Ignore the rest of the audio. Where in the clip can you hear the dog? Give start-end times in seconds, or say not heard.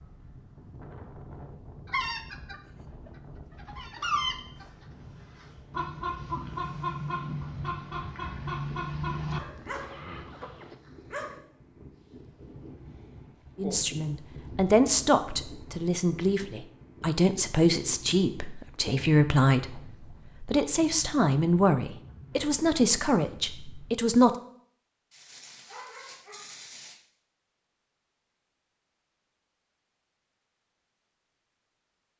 9.3-11.4, 25.1-27.0.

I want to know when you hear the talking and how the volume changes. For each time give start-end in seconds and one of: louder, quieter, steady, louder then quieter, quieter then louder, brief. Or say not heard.
13.6-24.3 steady.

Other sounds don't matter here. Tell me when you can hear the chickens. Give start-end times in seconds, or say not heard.
1.9-10.8.